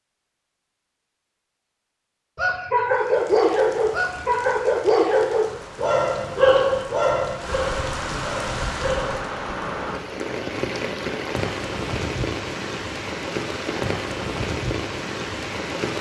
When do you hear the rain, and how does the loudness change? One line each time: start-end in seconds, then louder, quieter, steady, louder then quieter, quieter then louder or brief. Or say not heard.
2.9-15.9 louder.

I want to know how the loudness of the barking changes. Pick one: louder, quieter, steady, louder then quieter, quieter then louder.
quieter.